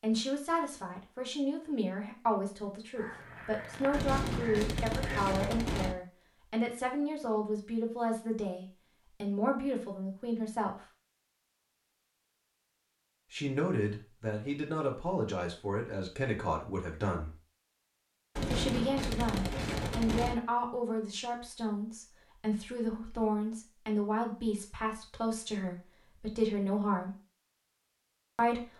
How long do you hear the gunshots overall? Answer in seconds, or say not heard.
4 s.